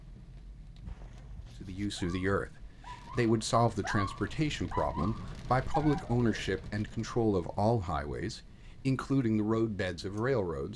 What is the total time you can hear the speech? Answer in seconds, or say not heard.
9 s.